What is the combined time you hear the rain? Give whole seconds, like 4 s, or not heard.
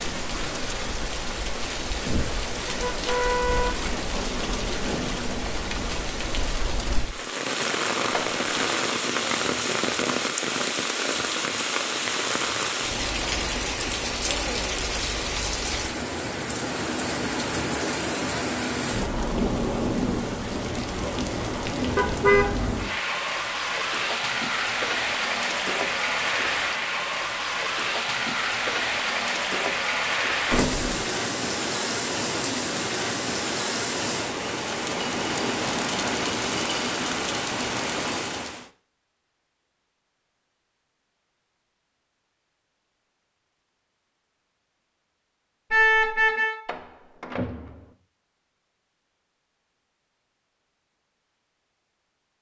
39 s.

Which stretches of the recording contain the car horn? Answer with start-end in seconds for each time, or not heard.
2.0-4.2, 21.9-22.5, 45.7-46.5.